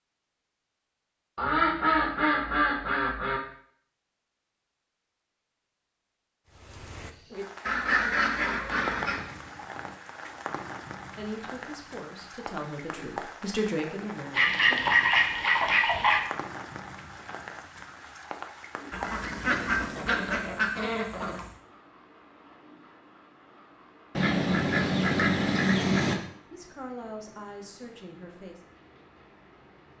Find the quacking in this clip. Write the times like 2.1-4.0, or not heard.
1.4-3.4, 7.7-9.2, 14.3-16.2, 18.9-21.6, 24.1-26.1.